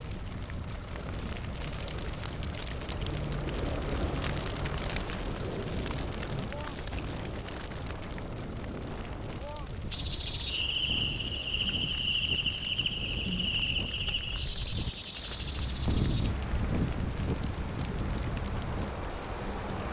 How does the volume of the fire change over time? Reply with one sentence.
The volume of the fire goes down.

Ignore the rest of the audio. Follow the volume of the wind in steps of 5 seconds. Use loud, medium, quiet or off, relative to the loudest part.
medium, medium, medium, loud.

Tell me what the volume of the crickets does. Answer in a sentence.
The loudness of the crickets goes down.